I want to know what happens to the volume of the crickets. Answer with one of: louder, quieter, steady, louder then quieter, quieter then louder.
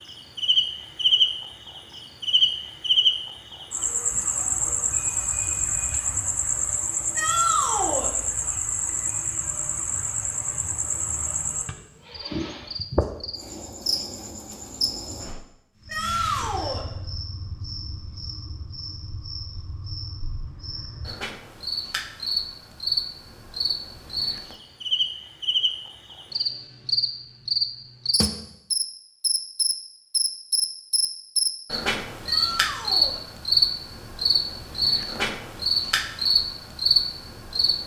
quieter then louder.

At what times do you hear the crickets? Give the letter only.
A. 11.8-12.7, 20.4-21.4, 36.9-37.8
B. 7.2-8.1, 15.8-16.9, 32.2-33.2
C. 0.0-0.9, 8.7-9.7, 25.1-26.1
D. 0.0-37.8
D.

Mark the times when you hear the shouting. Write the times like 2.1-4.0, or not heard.
7.2-8.1, 15.8-16.9, 32.2-33.2.